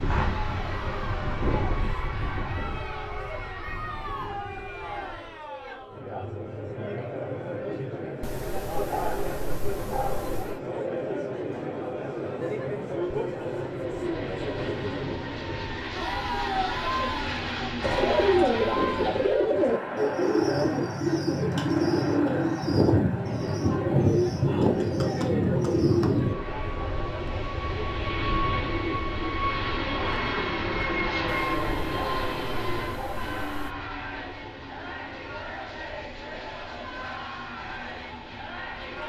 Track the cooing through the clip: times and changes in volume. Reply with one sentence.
You can hear the cooing from 17.8 to 26.4 s, at a steady volume.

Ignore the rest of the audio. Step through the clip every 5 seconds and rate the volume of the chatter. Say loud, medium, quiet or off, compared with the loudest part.
medium, loud, loud, loud, loud, medium, medium, medium.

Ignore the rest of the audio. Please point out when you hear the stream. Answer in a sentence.
You can't hear the stream here.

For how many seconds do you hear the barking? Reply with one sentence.
The barking can be heard for 5 seconds in total.